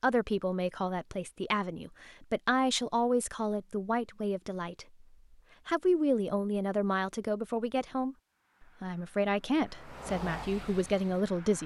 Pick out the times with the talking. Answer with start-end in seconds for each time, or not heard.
0.0-5.0, 5.7-8.2, 8.8-11.6.